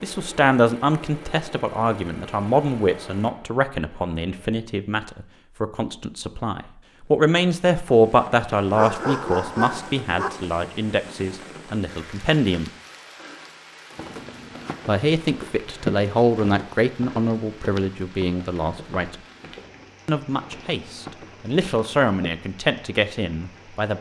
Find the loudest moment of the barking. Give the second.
9 s.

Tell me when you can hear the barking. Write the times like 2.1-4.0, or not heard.
8.7-10.3.